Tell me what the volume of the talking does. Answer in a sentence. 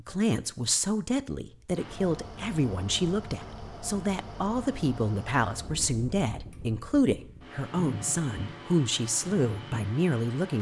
The loudness of the talking stays about the same.